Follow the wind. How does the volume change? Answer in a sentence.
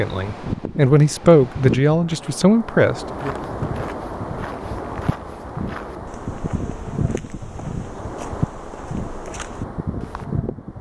The loudness of the wind stays about the same.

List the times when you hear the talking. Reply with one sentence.
The talking can be heard from 0.0 to 3.4 s.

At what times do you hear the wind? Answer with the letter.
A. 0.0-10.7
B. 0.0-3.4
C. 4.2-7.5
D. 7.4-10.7
A.